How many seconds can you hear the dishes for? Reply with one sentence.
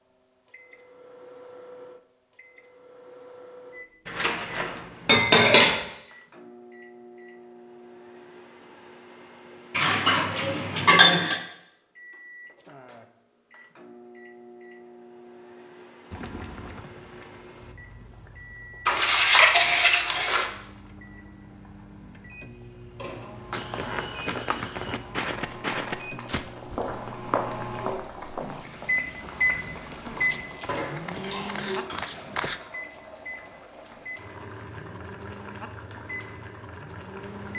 You can hear the dishes for 7 seconds altogether.